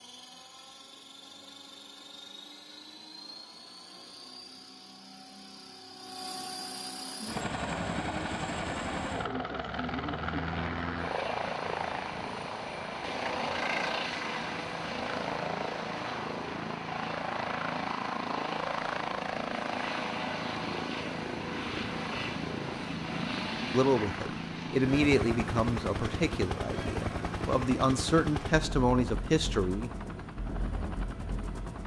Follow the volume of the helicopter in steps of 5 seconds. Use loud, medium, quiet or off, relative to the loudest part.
quiet, loud, loud, loud, loud, loud, medium.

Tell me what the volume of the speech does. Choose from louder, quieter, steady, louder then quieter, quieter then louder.
quieter then louder.